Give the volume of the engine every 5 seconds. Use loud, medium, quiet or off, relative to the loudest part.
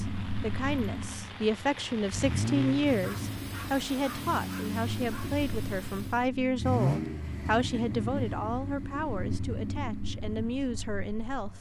loud, loud, medium.